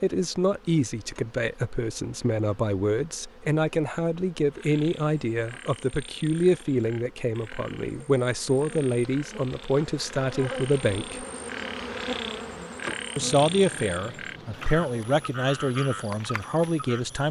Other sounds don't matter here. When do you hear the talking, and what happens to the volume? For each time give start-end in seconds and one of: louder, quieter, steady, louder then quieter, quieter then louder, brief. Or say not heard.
0.0-11.2 steady
13.2-17.2 steady.